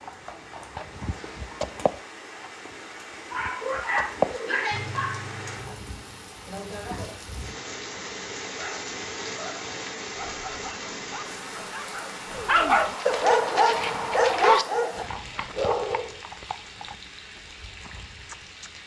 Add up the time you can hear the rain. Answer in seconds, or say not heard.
19 s.